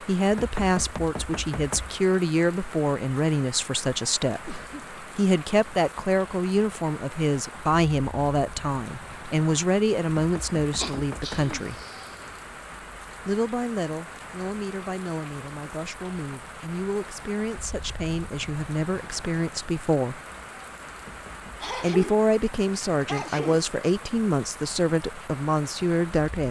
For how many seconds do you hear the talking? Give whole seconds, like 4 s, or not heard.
23 s.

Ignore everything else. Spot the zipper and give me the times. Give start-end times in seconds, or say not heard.
not heard.